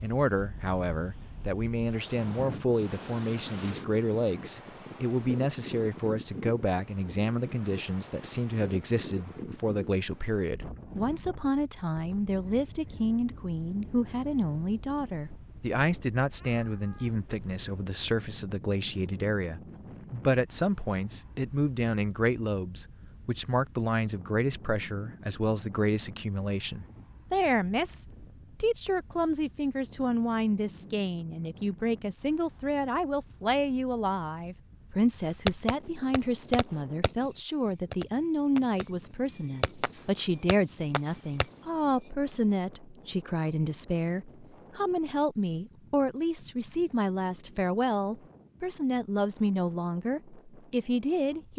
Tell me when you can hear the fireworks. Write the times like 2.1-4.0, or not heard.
35.5-42.1.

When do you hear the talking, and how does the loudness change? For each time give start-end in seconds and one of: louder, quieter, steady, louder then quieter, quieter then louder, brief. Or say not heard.
0.0-51.5 steady.